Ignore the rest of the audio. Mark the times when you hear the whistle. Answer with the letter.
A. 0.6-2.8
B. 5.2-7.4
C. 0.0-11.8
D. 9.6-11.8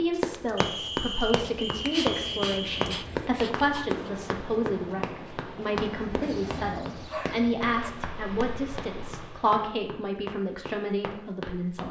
A.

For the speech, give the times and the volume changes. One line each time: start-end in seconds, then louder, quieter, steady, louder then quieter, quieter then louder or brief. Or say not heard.
0.0-11.8 steady.